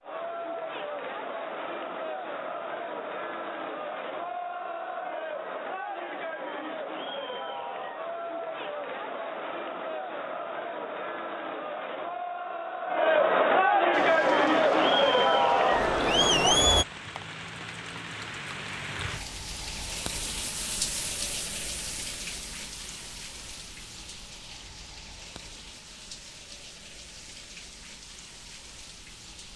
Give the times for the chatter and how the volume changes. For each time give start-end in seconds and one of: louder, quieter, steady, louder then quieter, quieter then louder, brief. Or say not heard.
0.0-16.9 louder.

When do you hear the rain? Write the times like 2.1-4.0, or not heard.
13.9-29.5.